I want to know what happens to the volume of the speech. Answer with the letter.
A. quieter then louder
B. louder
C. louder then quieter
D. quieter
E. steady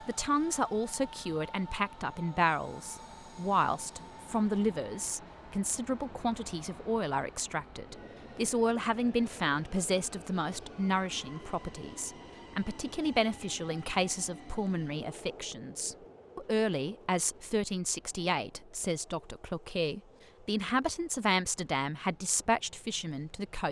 E.